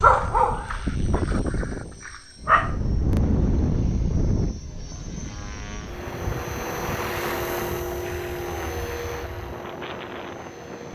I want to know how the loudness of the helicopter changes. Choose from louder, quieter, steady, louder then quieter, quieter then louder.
louder then quieter.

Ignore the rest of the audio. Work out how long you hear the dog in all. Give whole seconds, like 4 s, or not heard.
3 s.